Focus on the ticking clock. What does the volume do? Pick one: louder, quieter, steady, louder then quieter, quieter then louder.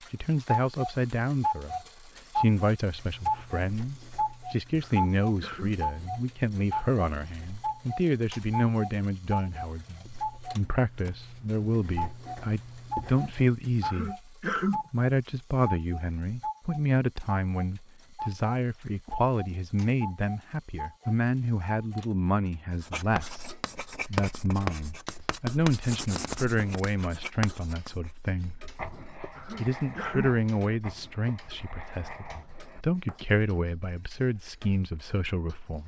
quieter.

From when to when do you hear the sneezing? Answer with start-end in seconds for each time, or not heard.
4.8-5.8, 13.8-14.8, 29.4-30.4.